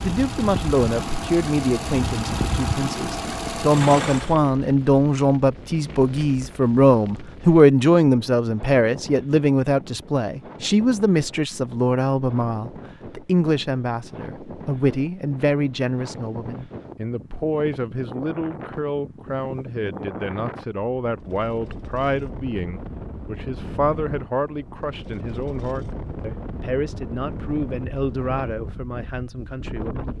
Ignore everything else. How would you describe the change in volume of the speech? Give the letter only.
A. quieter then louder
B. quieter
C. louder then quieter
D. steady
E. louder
B.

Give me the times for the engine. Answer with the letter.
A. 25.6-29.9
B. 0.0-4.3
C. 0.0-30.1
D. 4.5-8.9
B.